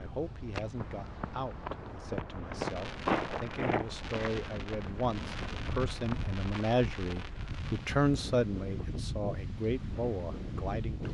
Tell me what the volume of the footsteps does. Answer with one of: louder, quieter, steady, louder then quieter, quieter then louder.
louder then quieter.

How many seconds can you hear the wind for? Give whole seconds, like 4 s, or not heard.
11 s.